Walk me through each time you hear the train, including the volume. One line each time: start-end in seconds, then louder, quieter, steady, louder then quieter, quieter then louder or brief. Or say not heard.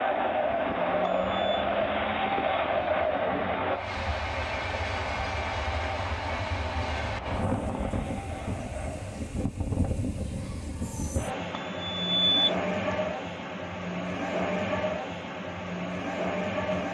0.0-16.8 louder.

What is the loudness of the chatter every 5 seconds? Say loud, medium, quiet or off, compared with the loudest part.
loud, quiet, off, off.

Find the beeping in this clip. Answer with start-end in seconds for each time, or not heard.
1.0-1.6, 11.6-12.9.